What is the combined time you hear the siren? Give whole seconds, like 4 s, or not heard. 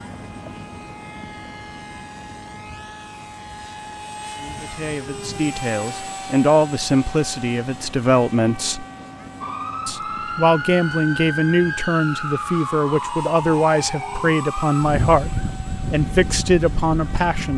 8 s.